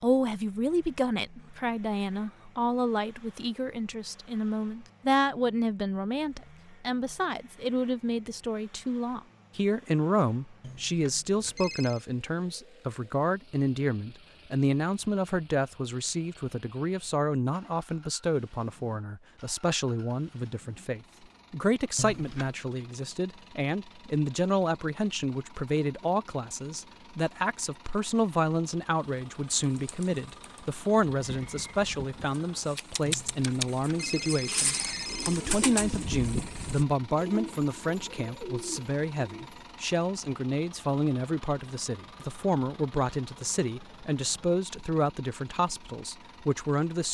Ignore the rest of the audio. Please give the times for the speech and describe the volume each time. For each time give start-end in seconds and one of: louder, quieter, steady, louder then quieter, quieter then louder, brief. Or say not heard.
0.0-47.1 steady.